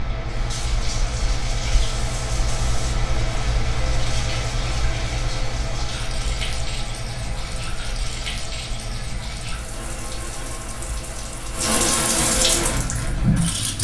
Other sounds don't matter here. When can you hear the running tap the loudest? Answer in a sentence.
The volume of the running tap peaks at 12 seconds.